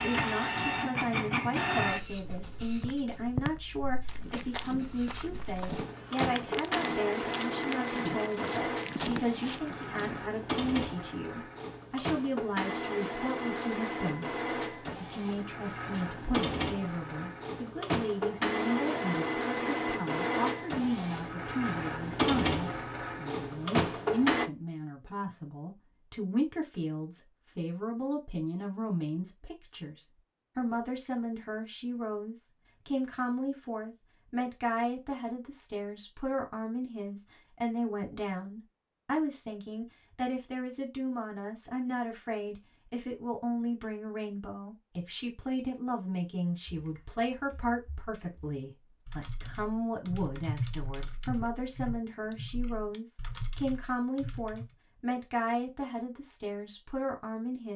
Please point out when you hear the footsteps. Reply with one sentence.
You can hear the footsteps from 2.2 to 10.2 s.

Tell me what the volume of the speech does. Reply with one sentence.
The loudness of the speech stays about the same.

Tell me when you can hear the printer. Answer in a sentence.
The printer can be heard from 0.0 to 24.5 s.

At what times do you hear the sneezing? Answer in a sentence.
The sneezing can't be heard in this clip.